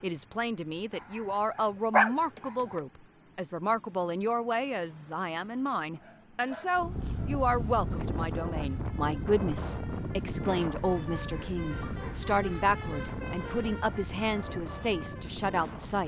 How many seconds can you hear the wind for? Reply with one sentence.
You can hear the wind for 9 seconds altogether.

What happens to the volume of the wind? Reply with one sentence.
The loudness of the wind goes down.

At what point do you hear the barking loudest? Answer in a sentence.
The loudest moment of the barking is at 2 seconds.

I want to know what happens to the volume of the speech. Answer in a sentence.
The volume of the speech stays about the same.